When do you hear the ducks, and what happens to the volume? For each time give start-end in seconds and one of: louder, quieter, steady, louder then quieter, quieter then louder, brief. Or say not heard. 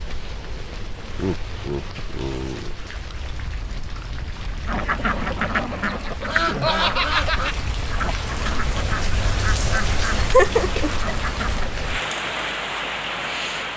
4.7-11.8 quieter.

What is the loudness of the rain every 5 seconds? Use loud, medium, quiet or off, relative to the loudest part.
medium, loud, loud.